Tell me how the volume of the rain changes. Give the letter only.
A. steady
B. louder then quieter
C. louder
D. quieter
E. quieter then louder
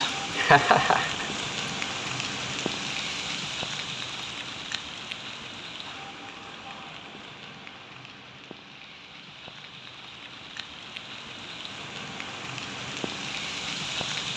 E.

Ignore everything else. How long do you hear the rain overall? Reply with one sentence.
The rain can be heard for 14 seconds in total.